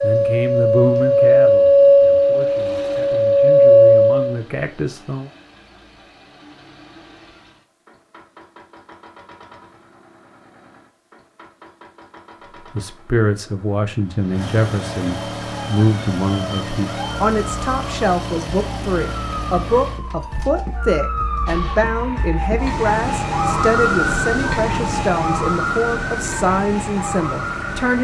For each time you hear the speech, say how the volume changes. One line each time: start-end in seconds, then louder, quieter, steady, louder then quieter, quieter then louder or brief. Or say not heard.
0.0-5.3 quieter then louder
12.8-28.0 steady.